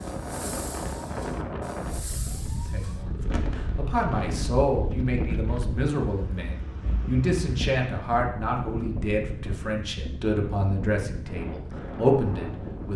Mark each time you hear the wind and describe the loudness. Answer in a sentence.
The wind can be heard from 0.0 to 12.9 s, at a steady volume.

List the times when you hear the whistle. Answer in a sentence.
The whistle can't be heard in this clip.